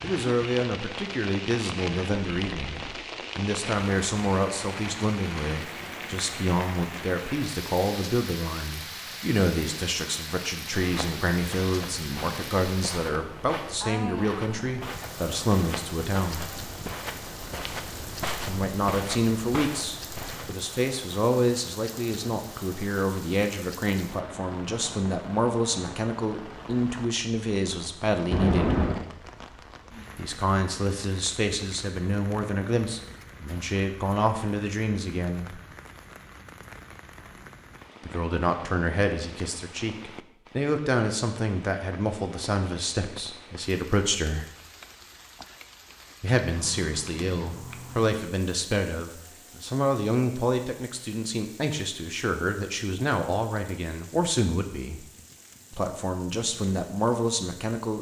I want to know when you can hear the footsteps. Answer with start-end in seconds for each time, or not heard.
10.7-20.6.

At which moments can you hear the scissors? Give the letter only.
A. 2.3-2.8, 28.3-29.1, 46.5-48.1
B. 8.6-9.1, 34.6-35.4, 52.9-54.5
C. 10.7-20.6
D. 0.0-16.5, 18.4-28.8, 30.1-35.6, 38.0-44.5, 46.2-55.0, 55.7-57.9
A.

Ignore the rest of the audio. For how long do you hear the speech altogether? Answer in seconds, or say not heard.
50 s.